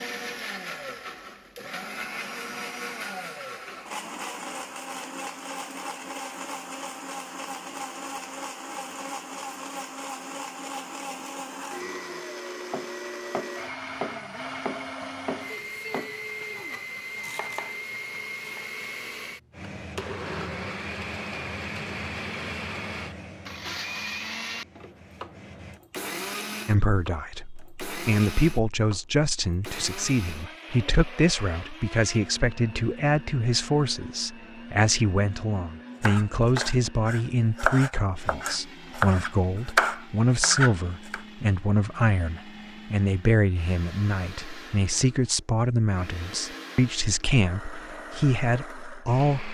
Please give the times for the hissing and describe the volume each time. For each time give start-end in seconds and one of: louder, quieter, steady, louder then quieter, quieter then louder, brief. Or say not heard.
19.5-25.8 quieter.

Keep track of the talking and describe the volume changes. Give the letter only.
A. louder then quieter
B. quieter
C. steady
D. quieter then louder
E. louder
C.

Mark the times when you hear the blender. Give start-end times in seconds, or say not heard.
0.0-49.5.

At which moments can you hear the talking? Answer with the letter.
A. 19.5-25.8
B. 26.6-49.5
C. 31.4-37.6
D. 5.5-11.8
B.